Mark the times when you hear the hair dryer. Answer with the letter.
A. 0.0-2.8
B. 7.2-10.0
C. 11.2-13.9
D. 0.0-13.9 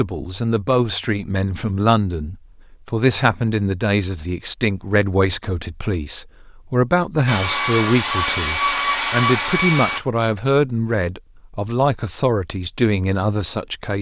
B.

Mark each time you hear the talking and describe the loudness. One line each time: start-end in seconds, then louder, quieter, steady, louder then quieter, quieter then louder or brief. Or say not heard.
0.0-13.9 steady.